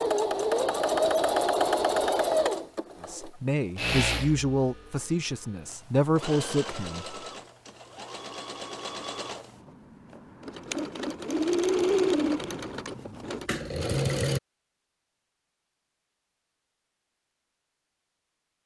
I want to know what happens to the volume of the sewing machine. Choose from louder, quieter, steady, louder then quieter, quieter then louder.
quieter then louder.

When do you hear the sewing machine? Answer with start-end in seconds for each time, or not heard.
0.0-14.4.